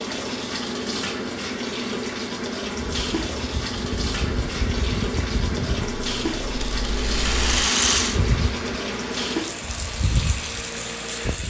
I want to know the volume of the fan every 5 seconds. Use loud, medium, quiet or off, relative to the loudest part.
medium, loud, loud.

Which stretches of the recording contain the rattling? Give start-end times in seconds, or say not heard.
6.6-8.2.